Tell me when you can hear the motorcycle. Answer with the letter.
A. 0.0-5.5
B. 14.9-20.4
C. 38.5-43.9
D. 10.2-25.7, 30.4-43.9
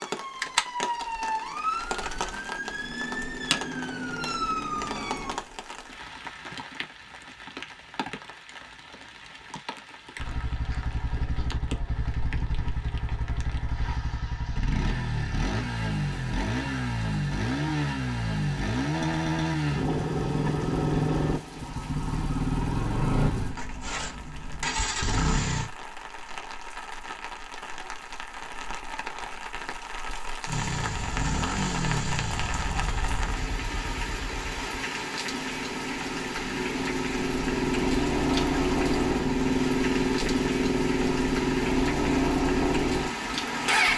D.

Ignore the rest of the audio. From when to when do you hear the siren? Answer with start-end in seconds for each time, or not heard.
0.0-5.5.